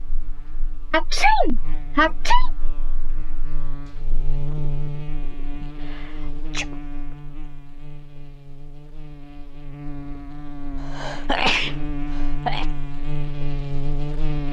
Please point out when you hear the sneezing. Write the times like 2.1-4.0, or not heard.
0.9-2.5, 5.6-6.8, 10.8-12.7.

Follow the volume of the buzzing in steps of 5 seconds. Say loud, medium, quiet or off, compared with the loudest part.
medium, medium, loud.